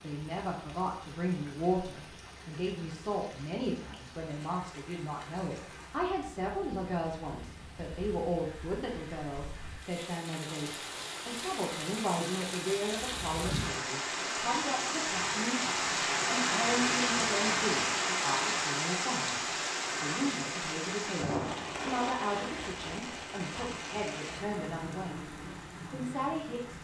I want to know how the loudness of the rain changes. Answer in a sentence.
The loudness of the rain goes up, then down.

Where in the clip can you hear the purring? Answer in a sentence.
The purring can't be heard in this clip.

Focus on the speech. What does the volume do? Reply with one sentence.
The volume of the speech stays about the same.